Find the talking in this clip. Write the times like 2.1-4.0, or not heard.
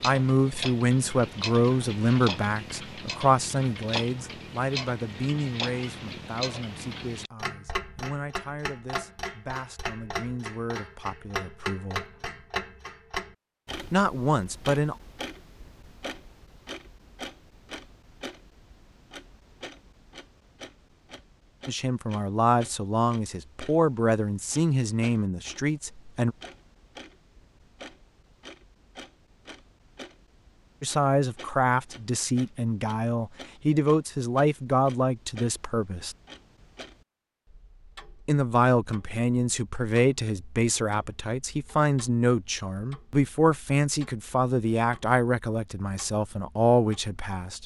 0.0-12.1, 13.9-14.9, 21.6-26.4, 30.8-36.1, 38.2-47.6.